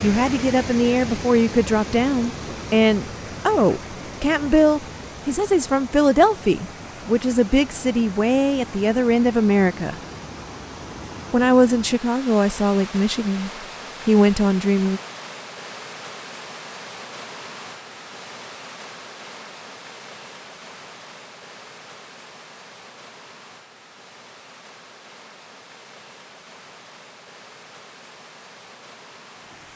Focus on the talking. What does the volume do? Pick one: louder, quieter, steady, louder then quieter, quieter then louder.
steady.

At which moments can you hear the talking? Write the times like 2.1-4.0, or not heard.
0.0-9.9, 11.3-15.0.